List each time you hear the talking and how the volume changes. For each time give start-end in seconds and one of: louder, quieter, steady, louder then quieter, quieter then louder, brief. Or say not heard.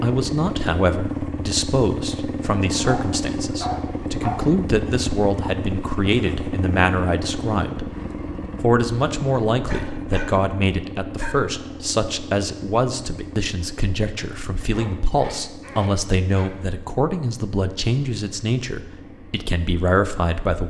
0.0-7.9 steady
8.6-20.6 steady.